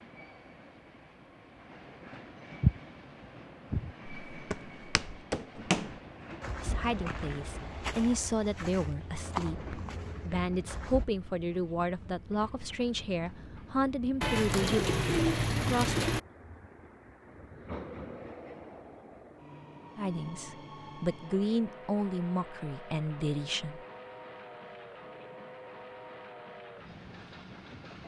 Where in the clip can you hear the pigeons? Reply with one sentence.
The pigeons can be heard from 14.2 to 16.2 s.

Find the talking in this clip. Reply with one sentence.
You can hear the talking from 6.6 to 16.1 s and from 19.9 to 23.8 s.